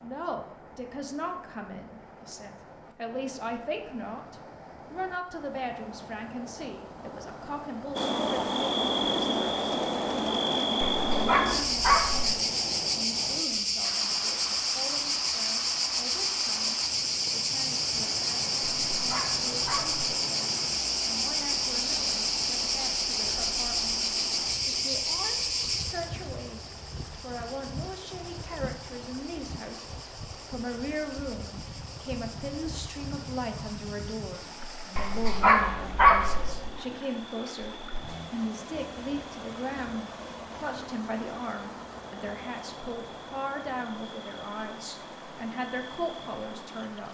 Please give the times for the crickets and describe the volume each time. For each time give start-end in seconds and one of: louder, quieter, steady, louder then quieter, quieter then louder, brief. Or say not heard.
8.0-47.0 quieter.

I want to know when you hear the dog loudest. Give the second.
36 s.